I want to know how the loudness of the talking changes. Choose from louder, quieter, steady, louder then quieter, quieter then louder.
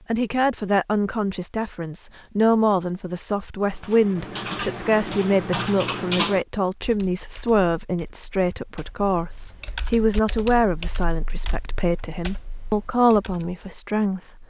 steady.